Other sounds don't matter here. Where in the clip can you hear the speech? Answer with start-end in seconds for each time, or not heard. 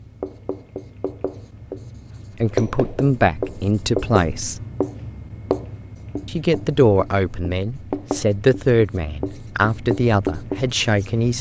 2.4-4.6, 6.2-11.3.